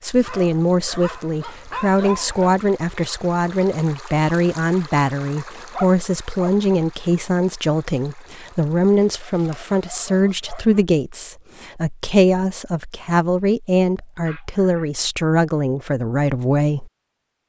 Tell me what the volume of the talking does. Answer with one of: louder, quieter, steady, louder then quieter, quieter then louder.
steady.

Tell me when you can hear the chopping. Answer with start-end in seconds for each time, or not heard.
not heard.